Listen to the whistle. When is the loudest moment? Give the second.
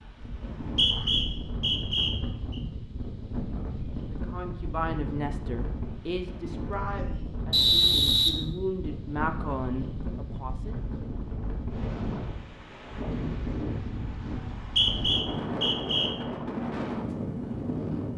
8 s.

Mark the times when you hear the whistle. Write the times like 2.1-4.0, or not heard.
0.3-2.5, 7.5-8.3, 14.4-16.1.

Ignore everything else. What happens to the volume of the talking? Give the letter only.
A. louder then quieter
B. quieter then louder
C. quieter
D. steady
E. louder
B.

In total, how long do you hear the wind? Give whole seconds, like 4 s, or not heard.
18 s.